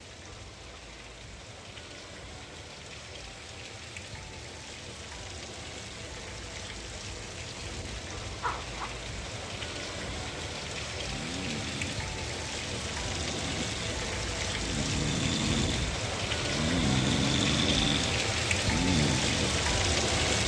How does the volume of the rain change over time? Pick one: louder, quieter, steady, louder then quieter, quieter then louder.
louder.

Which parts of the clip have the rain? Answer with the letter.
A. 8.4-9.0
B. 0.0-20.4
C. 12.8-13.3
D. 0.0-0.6
B.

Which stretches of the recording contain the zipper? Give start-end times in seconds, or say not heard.
8.4-9.0.